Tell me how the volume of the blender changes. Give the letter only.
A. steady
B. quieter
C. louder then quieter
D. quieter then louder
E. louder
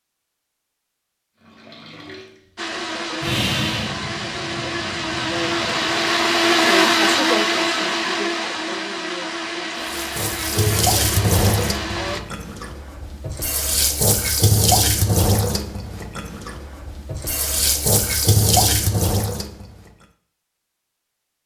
C.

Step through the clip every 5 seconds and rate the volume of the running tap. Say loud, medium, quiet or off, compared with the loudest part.
medium, quiet, loud, loud, off.